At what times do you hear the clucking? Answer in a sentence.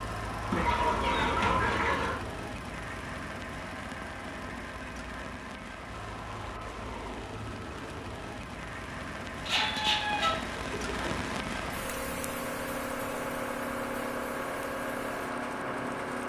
You can hear the clucking from 0.5 to 2.1 s and from 9.4 to 11.2 s.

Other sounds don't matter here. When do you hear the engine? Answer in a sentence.
The engine can be heard from 0.0 to 16.2 s.